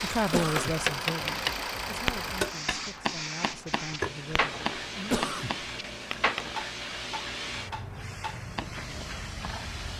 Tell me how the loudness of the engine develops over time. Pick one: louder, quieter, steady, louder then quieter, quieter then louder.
quieter.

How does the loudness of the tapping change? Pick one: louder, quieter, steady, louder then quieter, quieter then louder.
quieter.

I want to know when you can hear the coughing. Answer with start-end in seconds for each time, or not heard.
0.3-0.8, 5.1-5.5.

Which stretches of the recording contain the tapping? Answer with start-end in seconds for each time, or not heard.
0.5-8.8.